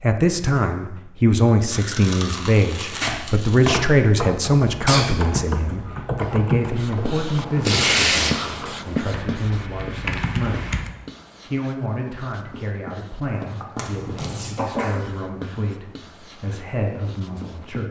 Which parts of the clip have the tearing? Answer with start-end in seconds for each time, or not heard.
1.7-3.9, 7.7-8.3, 13.8-14.6.